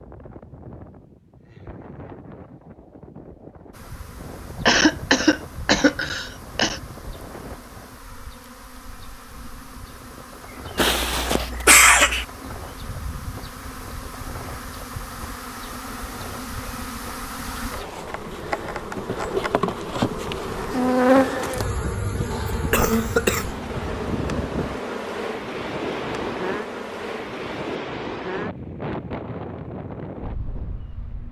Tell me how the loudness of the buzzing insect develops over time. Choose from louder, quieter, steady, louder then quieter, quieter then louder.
louder then quieter.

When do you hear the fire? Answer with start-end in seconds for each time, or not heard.
not heard.